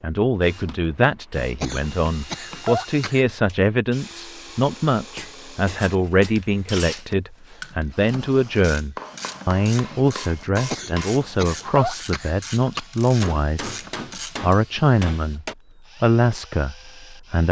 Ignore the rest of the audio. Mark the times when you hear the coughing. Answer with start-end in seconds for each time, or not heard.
1.6-3.2, 10.7-12.8.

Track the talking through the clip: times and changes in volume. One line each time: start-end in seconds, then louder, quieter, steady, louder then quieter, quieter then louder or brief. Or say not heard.
0.0-13.7 steady
14.4-17.4 brief.